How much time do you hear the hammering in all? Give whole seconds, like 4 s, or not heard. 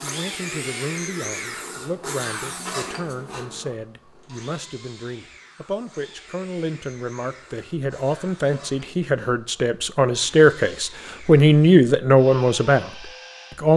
not heard.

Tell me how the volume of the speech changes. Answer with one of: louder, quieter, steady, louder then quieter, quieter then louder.
louder.